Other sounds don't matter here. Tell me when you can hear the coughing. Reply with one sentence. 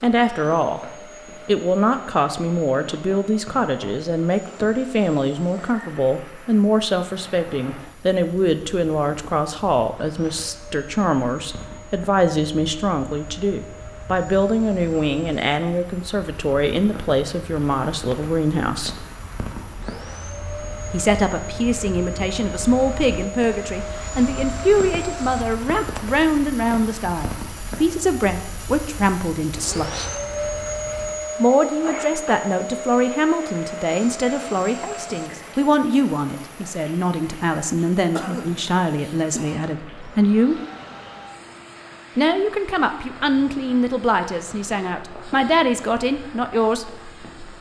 You can hear the coughing from 38.1 to 39.8 s.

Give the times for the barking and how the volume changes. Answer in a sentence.
You can't hear the barking here.